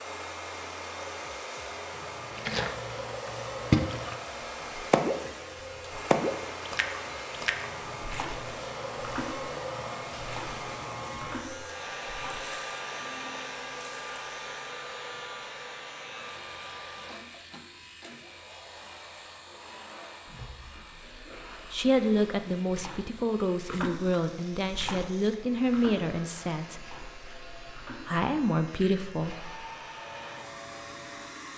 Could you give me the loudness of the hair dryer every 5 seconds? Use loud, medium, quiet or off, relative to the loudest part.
loud, loud, loud, medium, quiet, medium, medium.